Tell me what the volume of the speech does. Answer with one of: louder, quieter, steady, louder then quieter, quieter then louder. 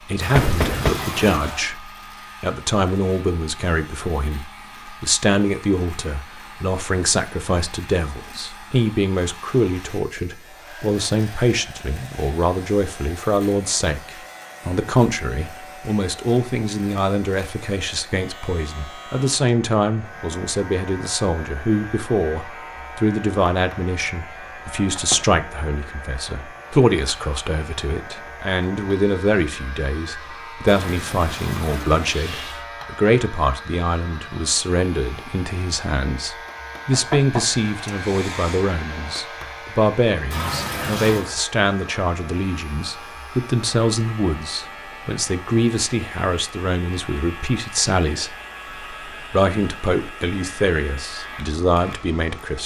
steady.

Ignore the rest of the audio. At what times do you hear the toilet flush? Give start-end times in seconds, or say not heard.
0.2-1.7, 30.6-32.6, 40.3-41.2.